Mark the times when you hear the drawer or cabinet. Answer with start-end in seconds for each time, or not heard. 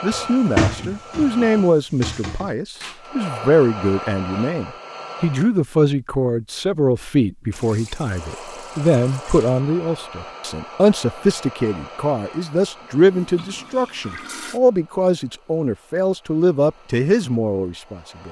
0.1-2.5.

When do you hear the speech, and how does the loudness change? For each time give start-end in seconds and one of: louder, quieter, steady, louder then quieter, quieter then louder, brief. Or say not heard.
0.0-18.2 steady.